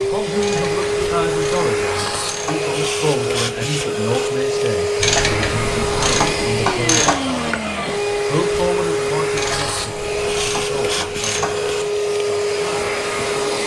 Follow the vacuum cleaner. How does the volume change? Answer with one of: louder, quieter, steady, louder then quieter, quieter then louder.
steady.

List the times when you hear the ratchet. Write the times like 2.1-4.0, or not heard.
0.3-2.7, 5.0-7.2, 9.3-11.9.